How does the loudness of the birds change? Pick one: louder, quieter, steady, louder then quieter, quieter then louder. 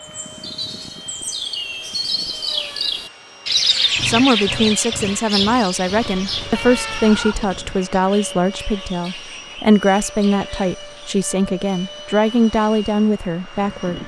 louder then quieter.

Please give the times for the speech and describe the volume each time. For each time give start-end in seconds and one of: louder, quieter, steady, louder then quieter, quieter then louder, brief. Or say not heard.
4.0-14.0 steady.